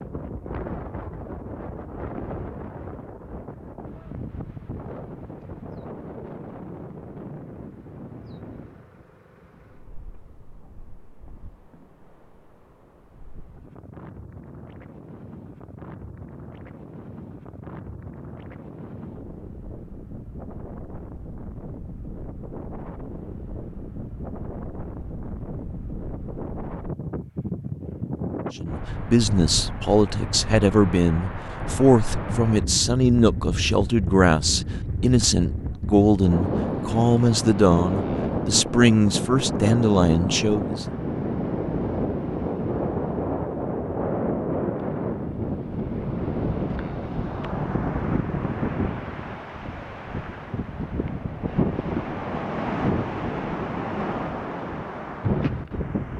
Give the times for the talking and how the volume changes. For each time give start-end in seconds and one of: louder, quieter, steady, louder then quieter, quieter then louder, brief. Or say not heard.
28.6-40.9 steady.